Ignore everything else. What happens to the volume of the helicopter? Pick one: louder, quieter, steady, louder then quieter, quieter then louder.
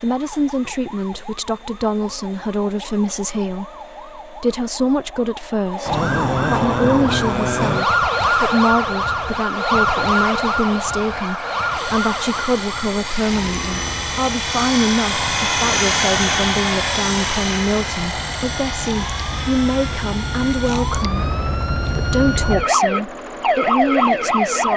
louder then quieter.